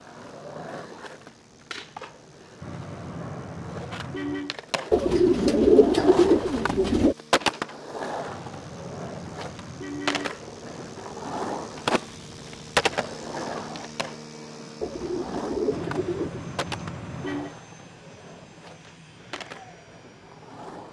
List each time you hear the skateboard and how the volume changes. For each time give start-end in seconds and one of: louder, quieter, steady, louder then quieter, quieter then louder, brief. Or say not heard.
0.0-20.8 louder then quieter.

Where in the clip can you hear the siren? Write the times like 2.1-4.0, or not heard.
not heard.